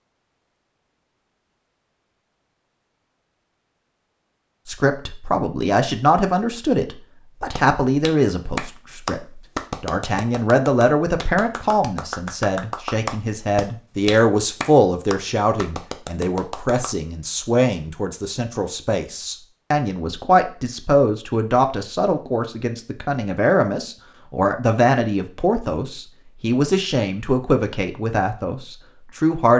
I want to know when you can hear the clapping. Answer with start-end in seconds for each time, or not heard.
7.5-16.9.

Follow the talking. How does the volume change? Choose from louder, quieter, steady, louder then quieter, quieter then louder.
steady.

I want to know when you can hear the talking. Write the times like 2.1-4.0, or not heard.
4.7-29.5.